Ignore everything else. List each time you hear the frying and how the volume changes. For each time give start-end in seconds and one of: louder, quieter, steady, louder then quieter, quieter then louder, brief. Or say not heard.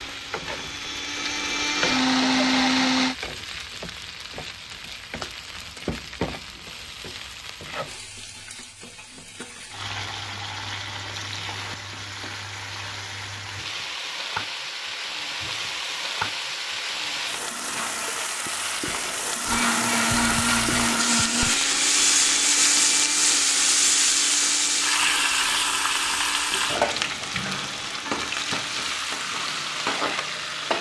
0.0-30.7 louder.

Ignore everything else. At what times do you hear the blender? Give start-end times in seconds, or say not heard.
0.0-3.1, 19.4-30.7.